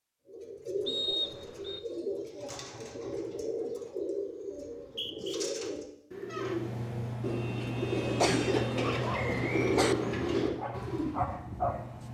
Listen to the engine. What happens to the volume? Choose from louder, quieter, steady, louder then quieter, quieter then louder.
quieter.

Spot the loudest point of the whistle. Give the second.
1 s.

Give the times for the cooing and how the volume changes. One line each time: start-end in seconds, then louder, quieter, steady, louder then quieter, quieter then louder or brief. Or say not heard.
0.2-11.3 louder.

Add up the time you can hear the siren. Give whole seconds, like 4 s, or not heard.
not heard.